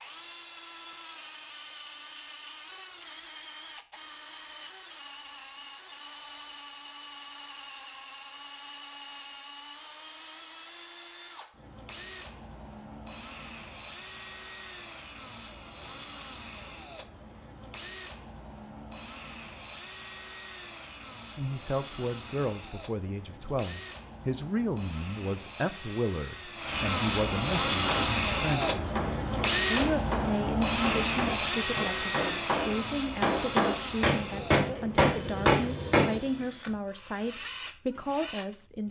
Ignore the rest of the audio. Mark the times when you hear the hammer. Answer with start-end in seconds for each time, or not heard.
27.7-36.2.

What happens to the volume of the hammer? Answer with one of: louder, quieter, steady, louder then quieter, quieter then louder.
louder.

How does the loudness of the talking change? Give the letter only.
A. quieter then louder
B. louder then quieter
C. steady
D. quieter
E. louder
C.